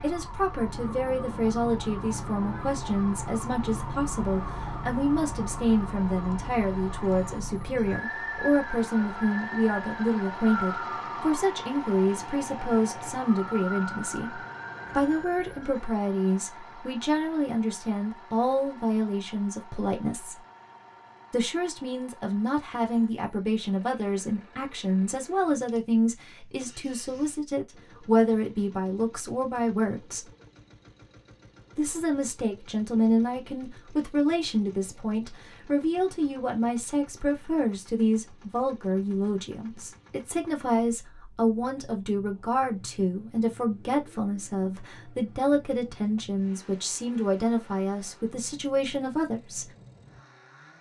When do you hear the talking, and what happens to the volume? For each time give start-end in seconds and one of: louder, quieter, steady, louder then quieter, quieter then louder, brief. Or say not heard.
0.0-20.4 steady
21.3-30.2 steady
31.8-49.7 steady.